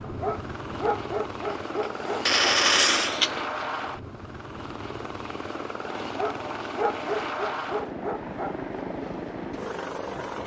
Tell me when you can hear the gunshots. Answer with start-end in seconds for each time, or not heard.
1.5-3.5.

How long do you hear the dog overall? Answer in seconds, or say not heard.
5 s.